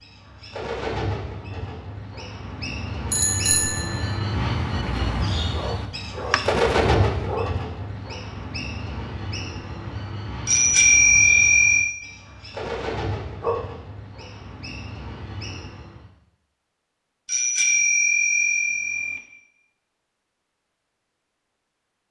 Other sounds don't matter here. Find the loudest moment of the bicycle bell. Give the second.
11 s.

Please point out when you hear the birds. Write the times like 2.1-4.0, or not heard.
0.0-16.1.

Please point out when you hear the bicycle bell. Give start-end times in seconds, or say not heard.
3.1-4.2, 10.4-11.9, 17.2-19.2.